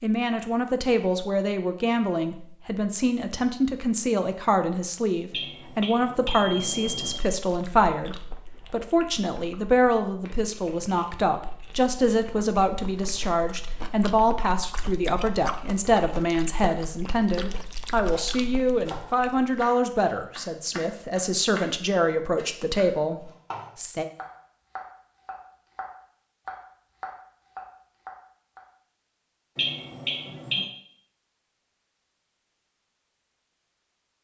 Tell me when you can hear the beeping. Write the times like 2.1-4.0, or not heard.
5.3-7.2, 29.6-30.6.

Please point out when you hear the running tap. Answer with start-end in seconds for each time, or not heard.
not heard.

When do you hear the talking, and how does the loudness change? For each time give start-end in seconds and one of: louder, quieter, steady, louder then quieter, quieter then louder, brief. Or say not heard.
0.0-24.1 steady.